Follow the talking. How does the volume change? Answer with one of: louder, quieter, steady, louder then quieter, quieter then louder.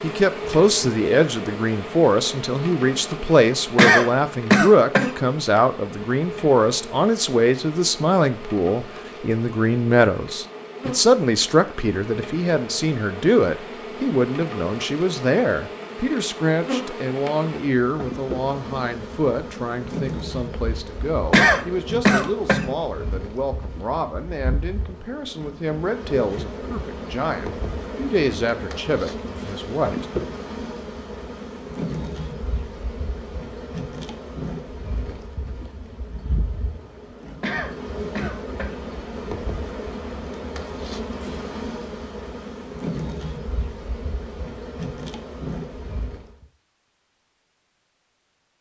quieter.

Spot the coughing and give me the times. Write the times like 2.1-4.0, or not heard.
3.8-5.1, 21.3-22.6, 37.4-38.8.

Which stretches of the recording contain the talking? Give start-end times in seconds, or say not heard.
0.0-30.1.